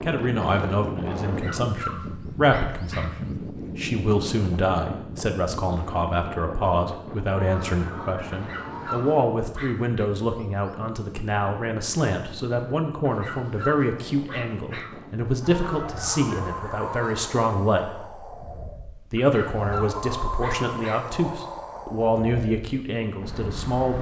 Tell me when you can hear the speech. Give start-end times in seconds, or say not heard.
0.0-23.9.